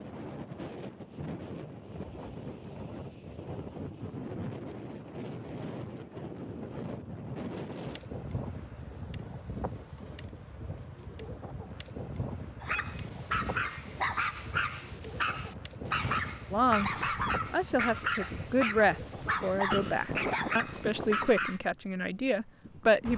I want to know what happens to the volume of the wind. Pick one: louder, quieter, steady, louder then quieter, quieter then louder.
steady.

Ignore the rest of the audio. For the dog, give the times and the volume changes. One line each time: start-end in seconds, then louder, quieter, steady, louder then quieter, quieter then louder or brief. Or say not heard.
12.6-21.6 steady.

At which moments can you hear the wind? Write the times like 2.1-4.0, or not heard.
0.0-23.1.